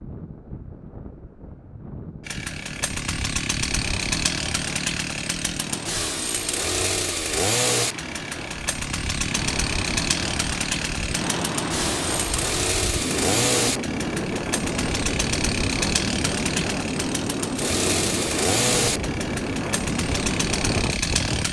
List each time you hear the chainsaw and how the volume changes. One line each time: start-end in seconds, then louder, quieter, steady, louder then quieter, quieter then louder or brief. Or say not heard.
2.2-21.4 steady.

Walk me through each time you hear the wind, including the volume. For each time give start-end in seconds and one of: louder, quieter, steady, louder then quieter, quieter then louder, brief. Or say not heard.
0.0-21.4 louder.